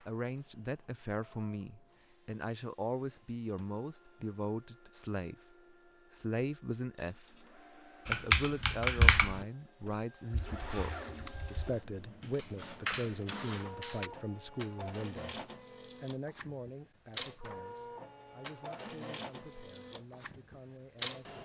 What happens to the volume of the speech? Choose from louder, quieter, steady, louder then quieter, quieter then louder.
quieter.